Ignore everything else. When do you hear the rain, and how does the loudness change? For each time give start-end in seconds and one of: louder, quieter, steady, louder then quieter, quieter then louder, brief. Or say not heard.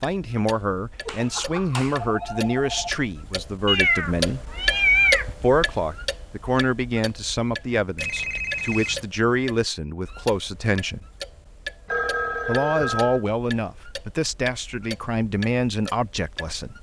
not heard.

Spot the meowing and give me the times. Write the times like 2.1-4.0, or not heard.
3.6-5.2.